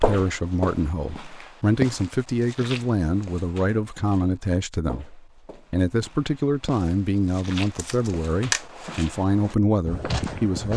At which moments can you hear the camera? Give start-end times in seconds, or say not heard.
7.3-8.7.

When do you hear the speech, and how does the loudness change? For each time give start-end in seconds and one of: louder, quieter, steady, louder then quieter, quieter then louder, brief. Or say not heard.
0.0-10.7 steady.